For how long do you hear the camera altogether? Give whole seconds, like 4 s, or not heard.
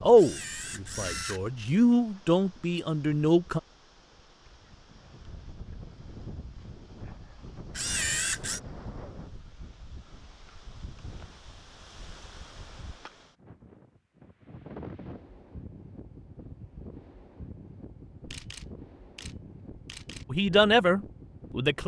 4 s.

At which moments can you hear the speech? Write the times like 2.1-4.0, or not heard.
0.0-3.6, 20.3-21.8.